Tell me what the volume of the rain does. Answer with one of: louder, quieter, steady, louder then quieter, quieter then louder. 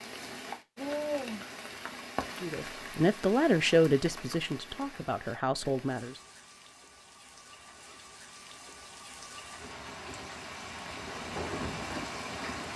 quieter then louder.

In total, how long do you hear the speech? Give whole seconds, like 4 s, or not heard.
4 s.